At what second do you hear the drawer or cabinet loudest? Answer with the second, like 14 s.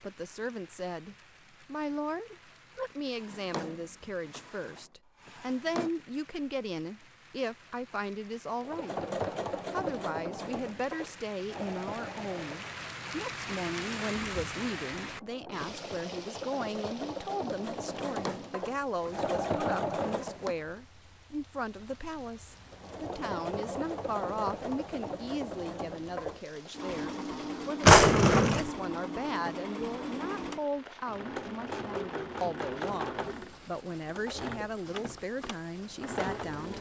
28 s.